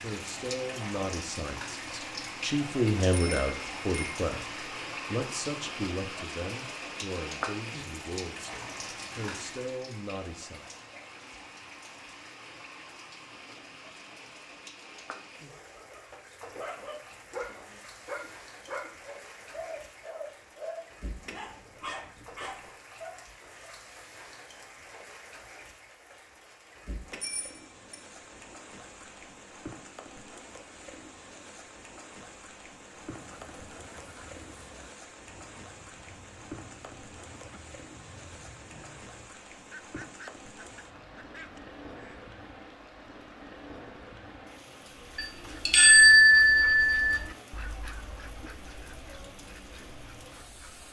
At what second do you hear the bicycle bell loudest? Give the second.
46 s.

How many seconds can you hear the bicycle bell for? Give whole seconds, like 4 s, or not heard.
4 s.